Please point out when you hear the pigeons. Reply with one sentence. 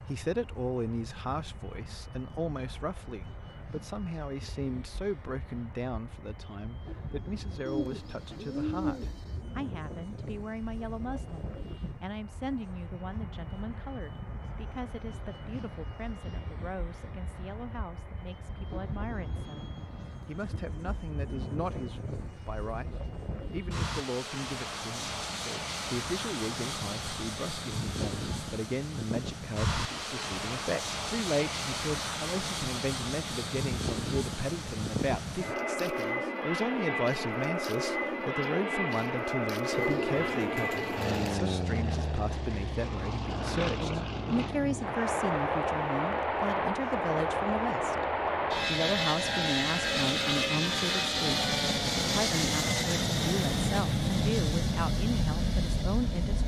The pigeons can be heard from 7.7 to 9.3 s and from 39.7 to 41.3 s.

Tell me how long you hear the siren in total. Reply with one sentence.
You can't hear the siren here.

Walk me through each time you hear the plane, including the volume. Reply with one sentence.
You can hear the plane from 0.0 to 56.4 s, getting louder.